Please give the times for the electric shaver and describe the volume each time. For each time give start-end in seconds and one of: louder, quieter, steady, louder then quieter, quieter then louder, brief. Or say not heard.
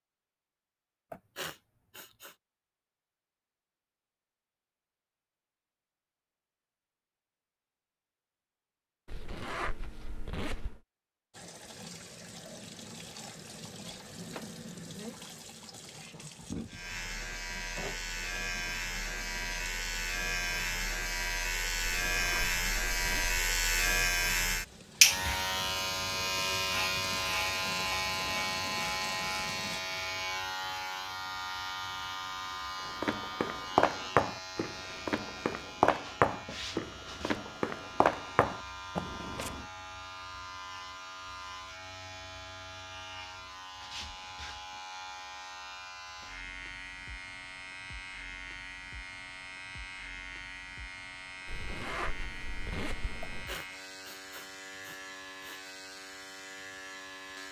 16.6-57.4 quieter.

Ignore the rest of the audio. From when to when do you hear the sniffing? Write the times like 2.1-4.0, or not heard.
1.1-2.4, 53.2-55.7.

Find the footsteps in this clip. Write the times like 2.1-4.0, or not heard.
32.9-39.6.